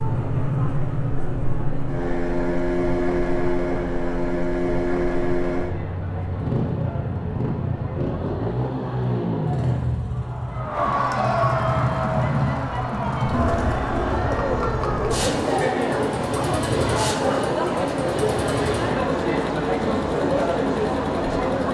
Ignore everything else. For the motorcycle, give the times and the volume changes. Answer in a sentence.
You can hear the motorcycle from 0.0 to 21.6 s, getting quieter.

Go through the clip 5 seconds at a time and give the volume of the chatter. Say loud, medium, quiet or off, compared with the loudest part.
quiet, quiet, loud, loud, loud.